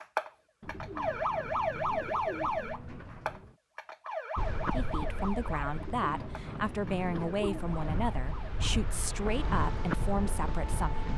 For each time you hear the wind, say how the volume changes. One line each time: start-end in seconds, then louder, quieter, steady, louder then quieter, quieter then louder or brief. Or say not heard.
4.3-11.1 quieter then louder.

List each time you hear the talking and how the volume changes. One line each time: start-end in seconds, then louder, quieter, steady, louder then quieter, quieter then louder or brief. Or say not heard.
4.7-11.1 steady.